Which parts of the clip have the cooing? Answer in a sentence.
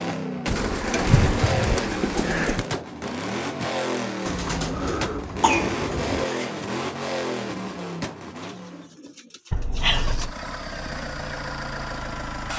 You can hear the cooing from 0.5 to 2.6 s, from 4.2 to 6.2 s and from 8.4 to 10.3 s.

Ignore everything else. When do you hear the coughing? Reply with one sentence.
The coughing can be heard from 1.1 to 1.7 s, from 5.4 to 6.5 s and from 9.5 to 10.3 s.